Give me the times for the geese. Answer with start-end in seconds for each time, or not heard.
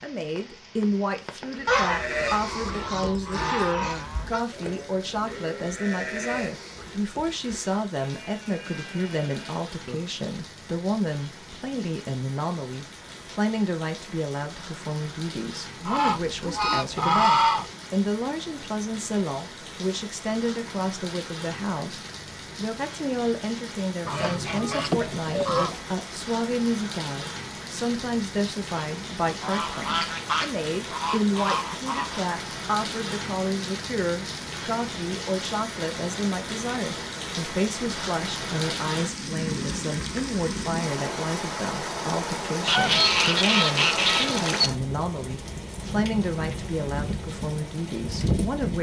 1.6-4.5, 15.8-17.7, 24.1-25.8, 29.4-32.2, 42.6-44.7.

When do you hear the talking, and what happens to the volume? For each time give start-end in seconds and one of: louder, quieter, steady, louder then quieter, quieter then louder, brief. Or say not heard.
0.0-48.7 steady.